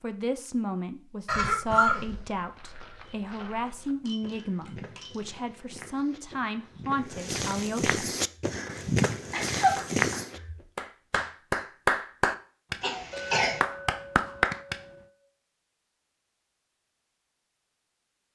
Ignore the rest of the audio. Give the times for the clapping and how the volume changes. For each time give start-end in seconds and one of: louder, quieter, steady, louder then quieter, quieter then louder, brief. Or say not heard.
8.4-14.8 louder.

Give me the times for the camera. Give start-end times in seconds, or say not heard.
not heard.